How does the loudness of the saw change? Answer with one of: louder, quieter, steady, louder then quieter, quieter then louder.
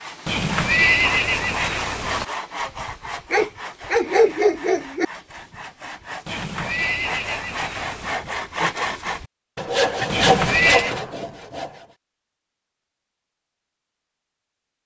quieter then louder.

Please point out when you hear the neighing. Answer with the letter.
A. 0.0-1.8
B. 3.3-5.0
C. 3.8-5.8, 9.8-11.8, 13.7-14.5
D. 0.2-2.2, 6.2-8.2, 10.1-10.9
D.